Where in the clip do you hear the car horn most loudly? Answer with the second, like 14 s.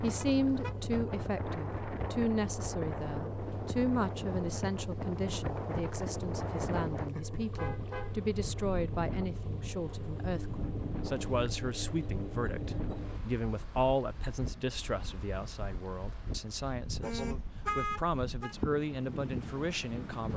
18 s.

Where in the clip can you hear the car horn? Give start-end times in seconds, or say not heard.
0.2-0.9, 7.5-8.2, 17.0-18.6.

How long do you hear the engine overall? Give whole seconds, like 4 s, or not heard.
13 s.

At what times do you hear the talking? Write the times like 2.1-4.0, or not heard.
0.0-20.3.